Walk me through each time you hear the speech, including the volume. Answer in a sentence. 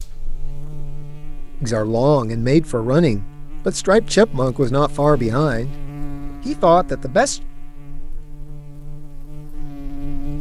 You can hear the speech from 1.6 to 5.8 s, at a steady volume; and briefly from 6.5 to 7.4 s.